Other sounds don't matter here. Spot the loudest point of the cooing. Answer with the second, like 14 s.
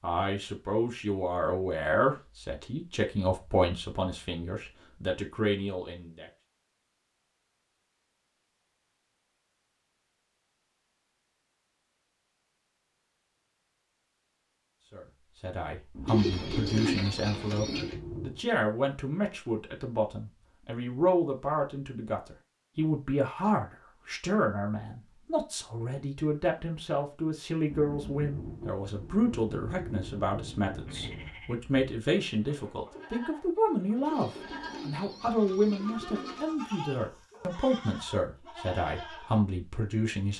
17 s.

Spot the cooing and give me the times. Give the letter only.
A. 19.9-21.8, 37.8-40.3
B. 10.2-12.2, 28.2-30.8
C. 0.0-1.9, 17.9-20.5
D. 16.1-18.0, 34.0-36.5
D.